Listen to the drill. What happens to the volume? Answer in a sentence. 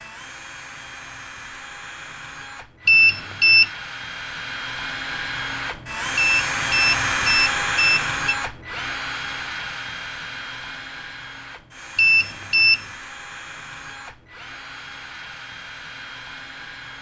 The loudness of the drill goes up, then down.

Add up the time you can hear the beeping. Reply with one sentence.
The beeping can be heard for 4 seconds in total.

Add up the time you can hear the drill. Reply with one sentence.
You can hear the drill for 17 seconds altogether.